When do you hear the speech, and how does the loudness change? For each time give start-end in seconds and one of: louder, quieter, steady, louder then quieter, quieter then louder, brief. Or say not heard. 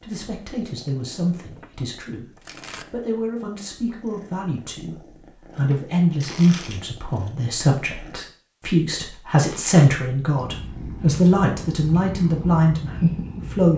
0.0-13.7 louder.